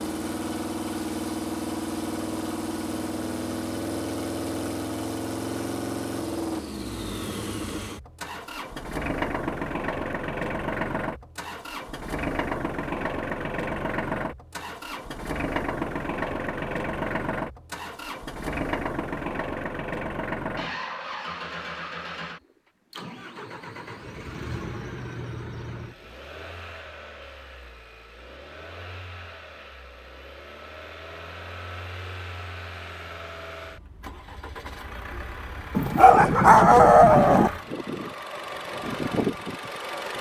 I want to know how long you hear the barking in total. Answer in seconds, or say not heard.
2 s.